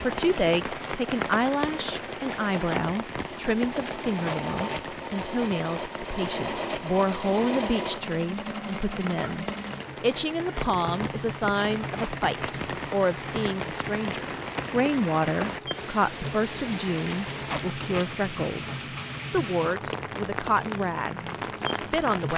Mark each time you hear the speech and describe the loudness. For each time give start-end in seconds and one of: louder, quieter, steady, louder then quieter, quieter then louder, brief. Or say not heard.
0.0-22.3 steady.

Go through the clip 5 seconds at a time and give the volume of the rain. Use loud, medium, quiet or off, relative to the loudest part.
loud, medium, loud, loud, loud.